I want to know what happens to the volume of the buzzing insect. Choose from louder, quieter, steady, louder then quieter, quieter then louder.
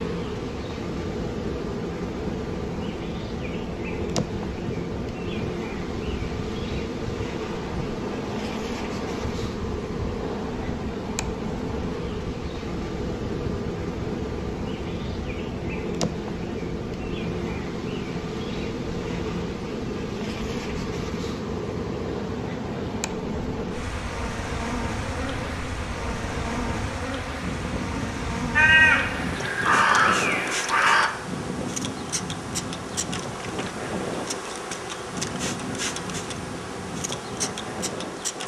steady.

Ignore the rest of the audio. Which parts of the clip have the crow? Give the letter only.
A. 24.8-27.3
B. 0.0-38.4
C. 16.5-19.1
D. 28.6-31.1
D.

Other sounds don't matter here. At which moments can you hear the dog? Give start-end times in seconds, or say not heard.
not heard.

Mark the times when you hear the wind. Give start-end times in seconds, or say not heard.
0.0-38.4.